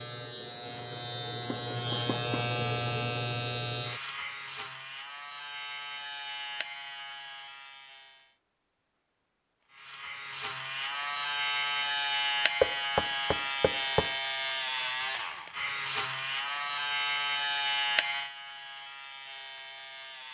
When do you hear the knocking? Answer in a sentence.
You can hear the knocking from 1.5 to 2.5 s and from 12.6 to 14.2 s.